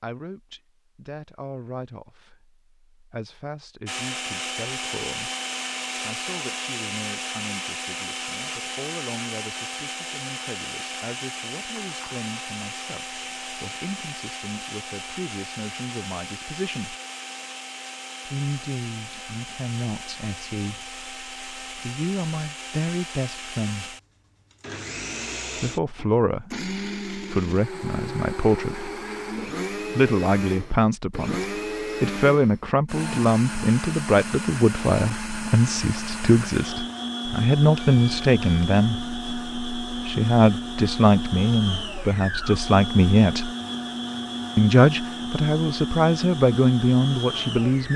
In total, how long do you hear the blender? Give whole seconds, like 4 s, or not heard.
44 s.